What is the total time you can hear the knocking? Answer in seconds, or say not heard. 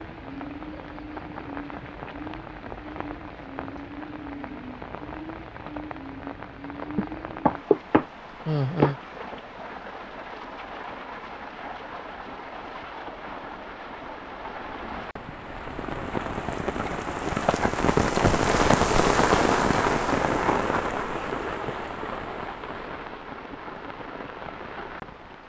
2 s.